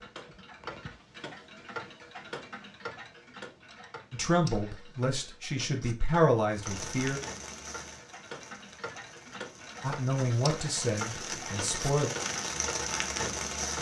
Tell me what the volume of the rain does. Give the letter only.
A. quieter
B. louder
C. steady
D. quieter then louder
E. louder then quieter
D.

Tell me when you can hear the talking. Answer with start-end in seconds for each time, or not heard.
4.1-7.2, 9.8-12.1.